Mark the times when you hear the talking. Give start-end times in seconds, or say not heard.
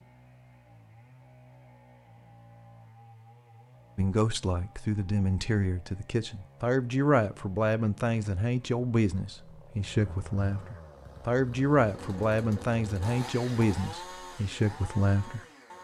4.0-15.4.